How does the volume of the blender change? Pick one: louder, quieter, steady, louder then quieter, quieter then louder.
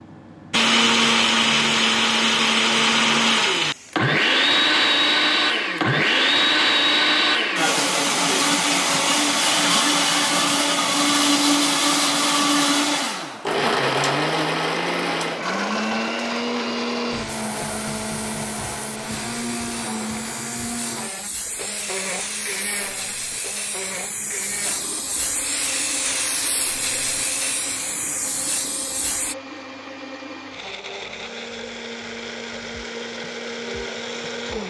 quieter.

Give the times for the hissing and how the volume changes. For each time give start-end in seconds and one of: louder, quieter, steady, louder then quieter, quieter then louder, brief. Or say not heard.
17.4-29.4 louder.